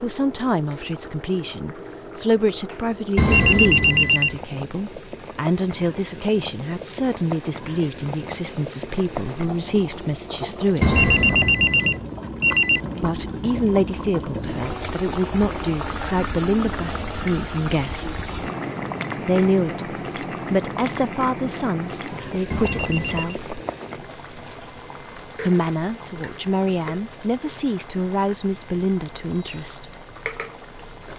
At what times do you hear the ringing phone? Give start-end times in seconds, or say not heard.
3.1-4.3, 10.8-12.8, 22.5-23.4.